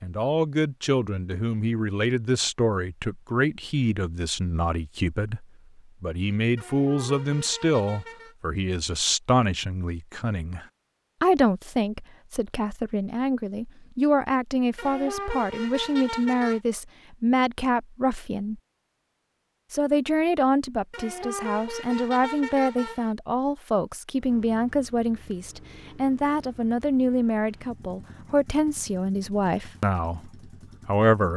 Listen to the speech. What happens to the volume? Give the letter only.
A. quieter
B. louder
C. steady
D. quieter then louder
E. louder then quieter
C.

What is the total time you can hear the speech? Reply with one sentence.
You can hear the speech for 30 seconds altogether.